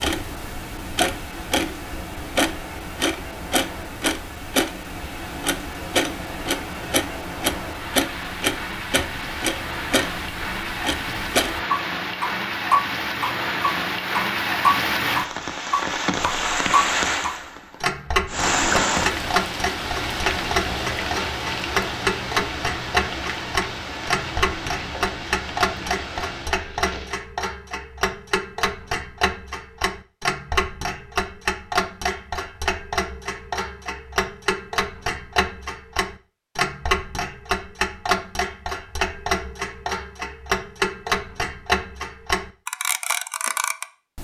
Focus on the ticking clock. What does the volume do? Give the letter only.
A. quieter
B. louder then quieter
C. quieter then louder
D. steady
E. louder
D.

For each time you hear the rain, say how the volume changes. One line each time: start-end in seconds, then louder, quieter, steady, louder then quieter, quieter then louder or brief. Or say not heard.
0.0-27.2 louder then quieter.